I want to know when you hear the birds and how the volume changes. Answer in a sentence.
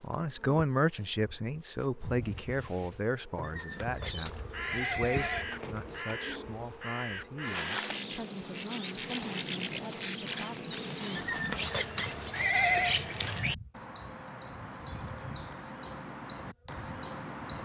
You can hear the birds from 4.0 to 17.6 s, getting louder.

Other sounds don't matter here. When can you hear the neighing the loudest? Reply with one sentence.
The volume of the neighing peaks at 13 seconds.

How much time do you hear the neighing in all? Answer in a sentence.
The neighing can be heard for 4 seconds in total.